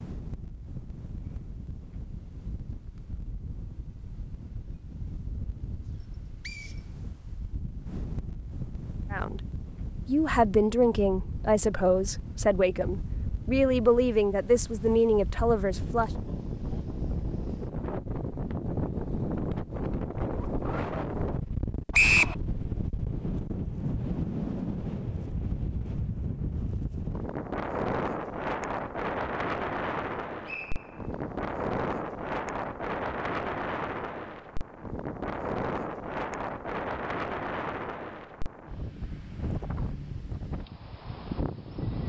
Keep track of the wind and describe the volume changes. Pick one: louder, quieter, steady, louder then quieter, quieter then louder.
louder.